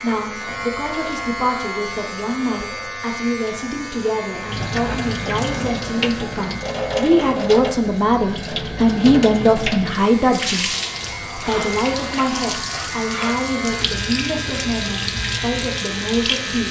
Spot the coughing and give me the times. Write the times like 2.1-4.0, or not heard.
not heard.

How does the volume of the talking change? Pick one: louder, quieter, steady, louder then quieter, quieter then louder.
louder then quieter.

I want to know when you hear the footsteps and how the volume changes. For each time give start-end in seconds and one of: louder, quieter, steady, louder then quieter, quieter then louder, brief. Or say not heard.
not heard.